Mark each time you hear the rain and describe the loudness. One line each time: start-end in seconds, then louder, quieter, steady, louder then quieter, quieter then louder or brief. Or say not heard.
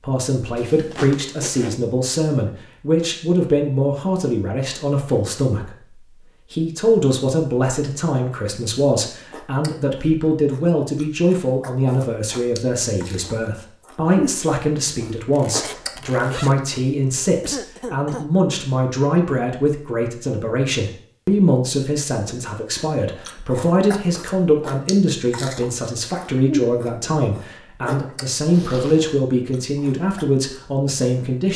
not heard.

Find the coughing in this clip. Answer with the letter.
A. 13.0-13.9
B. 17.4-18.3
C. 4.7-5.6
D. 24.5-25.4
B.